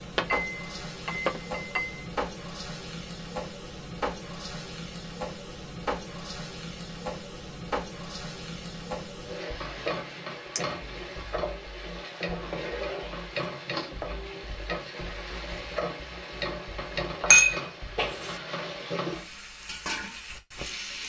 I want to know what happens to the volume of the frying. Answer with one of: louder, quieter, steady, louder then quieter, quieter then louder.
steady.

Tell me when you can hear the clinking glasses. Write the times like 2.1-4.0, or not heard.
0.1-2.0, 10.6-11.1, 17.3-18.3.